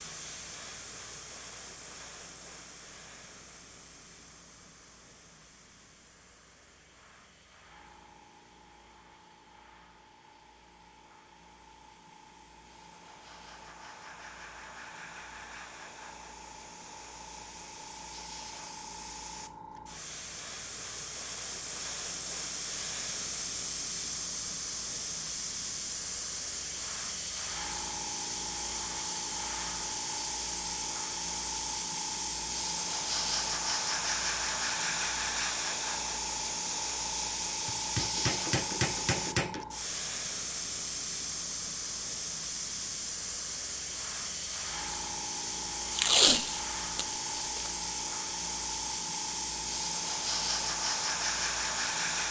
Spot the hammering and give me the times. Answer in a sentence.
The hammering can be heard from 37.6 to 39.6 s.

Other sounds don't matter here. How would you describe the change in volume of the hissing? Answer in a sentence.
The loudness of the hissing goes up.